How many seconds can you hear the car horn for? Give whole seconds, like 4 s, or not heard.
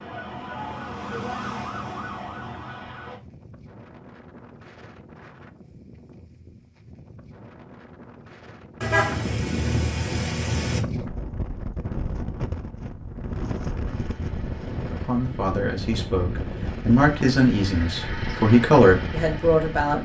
2 s.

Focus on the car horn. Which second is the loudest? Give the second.
9 s.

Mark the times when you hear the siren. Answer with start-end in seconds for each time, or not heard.
0.0-3.2.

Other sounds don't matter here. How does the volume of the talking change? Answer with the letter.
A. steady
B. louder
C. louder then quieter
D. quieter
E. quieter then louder
B.